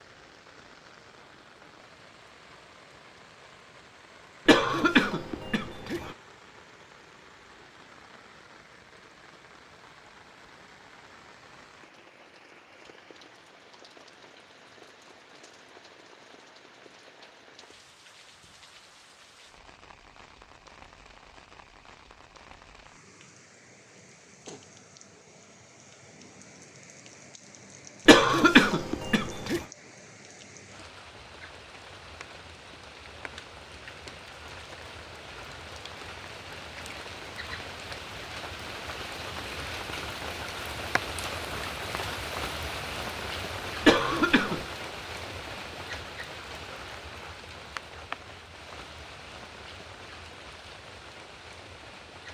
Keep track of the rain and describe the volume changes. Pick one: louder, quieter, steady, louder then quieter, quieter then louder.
louder.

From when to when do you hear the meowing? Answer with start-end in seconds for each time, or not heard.
not heard.